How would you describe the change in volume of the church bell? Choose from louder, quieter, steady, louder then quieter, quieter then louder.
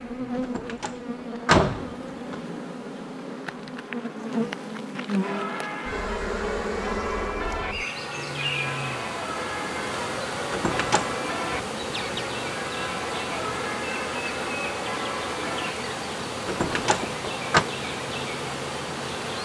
steady.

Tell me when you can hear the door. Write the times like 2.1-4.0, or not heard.
0.4-2.4, 10.5-11.2, 16.4-17.6.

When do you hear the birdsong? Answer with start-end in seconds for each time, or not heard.
not heard.